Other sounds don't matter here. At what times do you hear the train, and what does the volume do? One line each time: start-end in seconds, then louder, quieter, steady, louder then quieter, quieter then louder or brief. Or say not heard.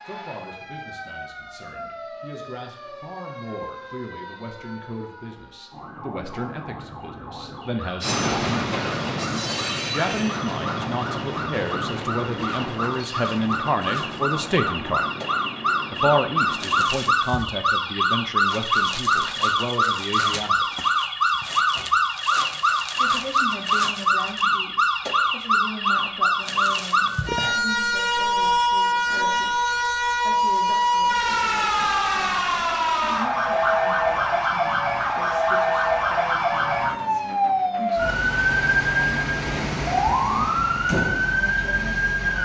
8.0-16.9 quieter.